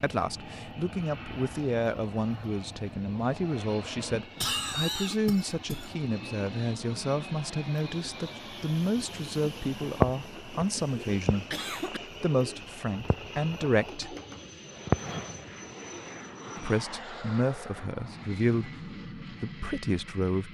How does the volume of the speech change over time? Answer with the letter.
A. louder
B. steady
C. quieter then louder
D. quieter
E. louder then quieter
B.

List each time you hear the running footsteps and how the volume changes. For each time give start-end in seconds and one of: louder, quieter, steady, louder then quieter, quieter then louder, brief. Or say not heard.
not heard.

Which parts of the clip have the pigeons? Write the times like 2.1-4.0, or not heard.
9.9-16.1.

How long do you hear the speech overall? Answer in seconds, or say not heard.
18 s.